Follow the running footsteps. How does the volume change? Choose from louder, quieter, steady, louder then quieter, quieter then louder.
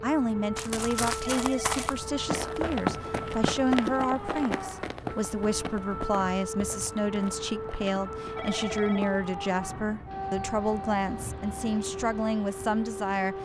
quieter.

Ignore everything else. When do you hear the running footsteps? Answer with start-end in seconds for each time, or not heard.
0.6-9.2.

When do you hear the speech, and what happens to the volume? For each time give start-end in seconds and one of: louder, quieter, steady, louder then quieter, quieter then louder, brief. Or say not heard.
0.0-13.3 steady.